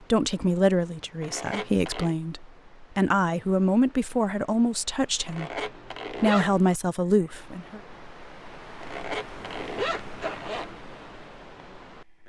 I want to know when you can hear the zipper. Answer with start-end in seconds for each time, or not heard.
1.2-2.1, 5.2-6.6, 8.8-10.8.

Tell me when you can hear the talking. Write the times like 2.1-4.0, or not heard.
0.1-5.6, 6.2-7.8.